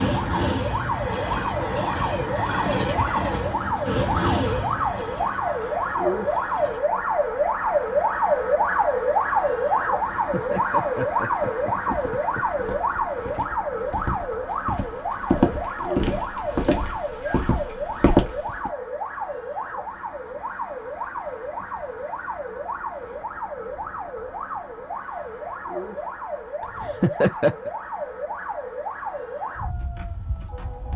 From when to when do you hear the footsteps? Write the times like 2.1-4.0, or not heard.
11.8-18.7.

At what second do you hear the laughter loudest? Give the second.
27 s.